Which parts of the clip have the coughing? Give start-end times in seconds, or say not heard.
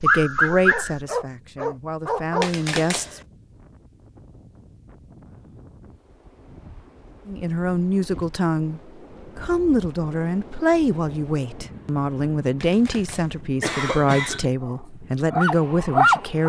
2.4-3.2, 12.6-14.4.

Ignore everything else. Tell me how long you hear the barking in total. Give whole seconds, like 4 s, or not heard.
4 s.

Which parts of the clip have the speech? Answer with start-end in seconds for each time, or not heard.
0.0-3.2, 7.2-16.4.